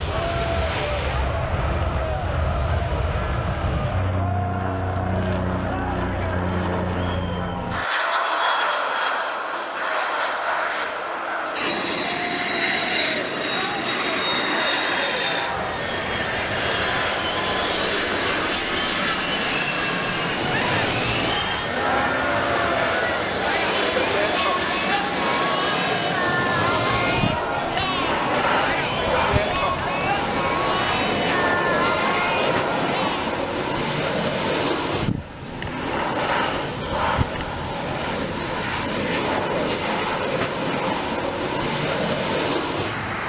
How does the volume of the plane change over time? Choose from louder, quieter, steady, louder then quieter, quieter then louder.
steady.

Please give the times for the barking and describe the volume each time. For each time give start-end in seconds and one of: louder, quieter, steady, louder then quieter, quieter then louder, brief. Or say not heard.
not heard.